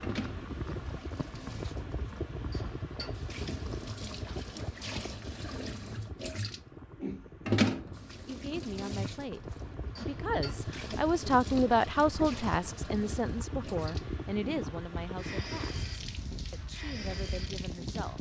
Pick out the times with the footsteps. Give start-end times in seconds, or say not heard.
not heard.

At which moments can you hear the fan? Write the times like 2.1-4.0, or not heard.
0.0-18.1.